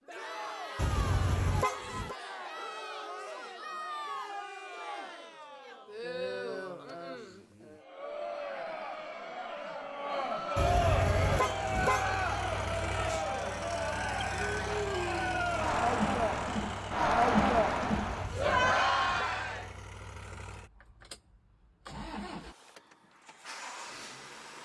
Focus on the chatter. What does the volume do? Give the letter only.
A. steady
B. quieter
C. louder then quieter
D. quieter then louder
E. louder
E.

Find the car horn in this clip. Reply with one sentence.
You can hear the car horn from 0.8 to 2.1 s, from 10.6 to 12.1 s and from 17.9 to 19.4 s.